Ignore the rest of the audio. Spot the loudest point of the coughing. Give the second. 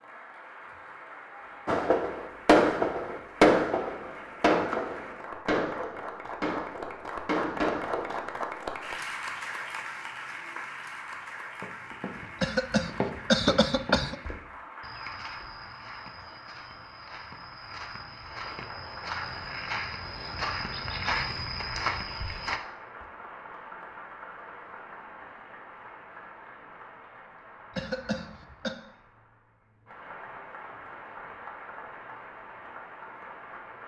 13 s.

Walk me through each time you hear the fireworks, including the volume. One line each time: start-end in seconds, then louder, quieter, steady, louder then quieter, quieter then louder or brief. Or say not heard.
1.6-8.3 quieter.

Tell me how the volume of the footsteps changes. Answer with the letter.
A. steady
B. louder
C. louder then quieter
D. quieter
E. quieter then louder
E.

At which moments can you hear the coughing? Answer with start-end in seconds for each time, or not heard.
12.4-14.2, 27.8-28.8.